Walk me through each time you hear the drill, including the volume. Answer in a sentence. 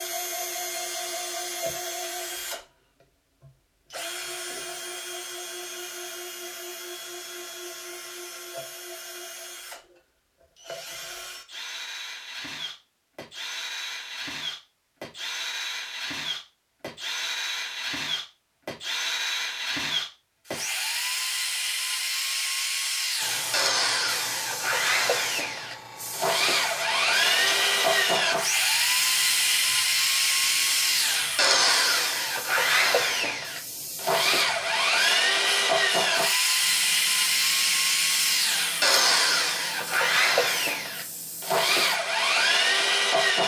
You can hear the drill from 0.0 to 43.4 s, getting louder.